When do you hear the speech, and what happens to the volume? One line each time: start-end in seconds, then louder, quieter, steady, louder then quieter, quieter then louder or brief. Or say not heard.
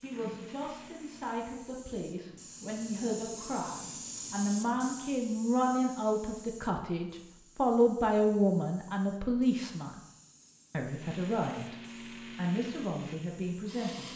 0.0-10.0 louder
10.7-11.8 brief
12.3-14.1 brief.